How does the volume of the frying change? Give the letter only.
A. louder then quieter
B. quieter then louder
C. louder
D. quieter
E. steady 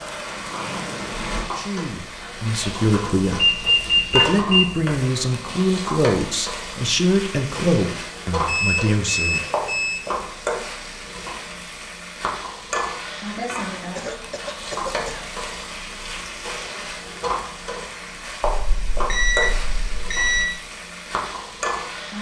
E.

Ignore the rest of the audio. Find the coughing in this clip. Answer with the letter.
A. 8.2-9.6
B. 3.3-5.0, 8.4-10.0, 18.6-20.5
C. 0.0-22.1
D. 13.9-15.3
D.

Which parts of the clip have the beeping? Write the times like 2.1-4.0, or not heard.
3.3-5.0, 8.4-10.0, 18.6-20.5.